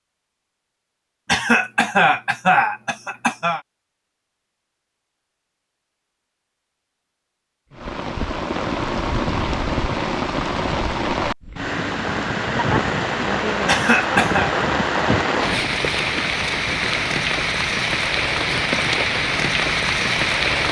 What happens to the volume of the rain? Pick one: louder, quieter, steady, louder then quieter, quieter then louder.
steady.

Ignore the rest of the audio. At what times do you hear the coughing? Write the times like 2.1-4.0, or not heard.
1.2-3.6, 13.7-14.5.